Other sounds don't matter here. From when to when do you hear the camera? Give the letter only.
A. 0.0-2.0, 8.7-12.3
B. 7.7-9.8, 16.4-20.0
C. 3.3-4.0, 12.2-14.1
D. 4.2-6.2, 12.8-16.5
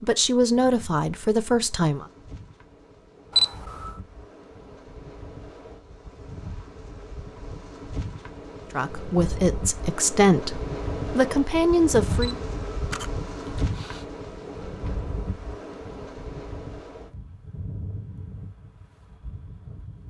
C.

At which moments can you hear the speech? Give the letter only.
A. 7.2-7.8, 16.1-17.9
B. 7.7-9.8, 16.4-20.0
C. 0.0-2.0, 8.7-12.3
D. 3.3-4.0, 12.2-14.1
C.